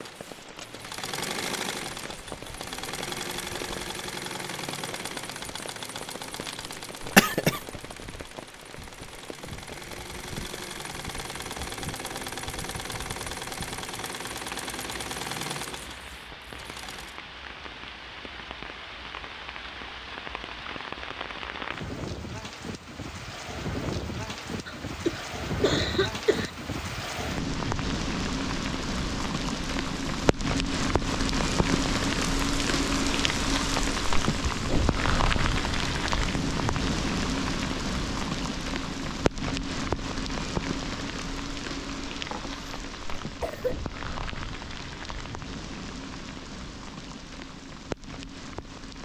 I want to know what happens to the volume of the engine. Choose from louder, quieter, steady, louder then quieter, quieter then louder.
quieter then louder.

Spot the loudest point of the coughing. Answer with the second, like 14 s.
7 s.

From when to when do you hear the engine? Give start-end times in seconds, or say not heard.
0.0-17.2.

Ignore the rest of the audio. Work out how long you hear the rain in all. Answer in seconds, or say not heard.
49 s.